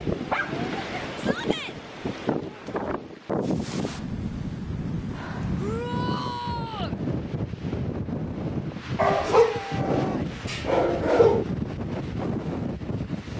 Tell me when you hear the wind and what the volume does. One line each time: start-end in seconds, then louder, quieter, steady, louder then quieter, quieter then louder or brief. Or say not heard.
0.0-13.3 steady.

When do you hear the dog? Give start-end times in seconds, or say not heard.
0.2-1.1, 8.9-11.4.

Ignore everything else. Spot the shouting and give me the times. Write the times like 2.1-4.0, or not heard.
1.1-1.8, 5.5-7.0, 9.2-10.4.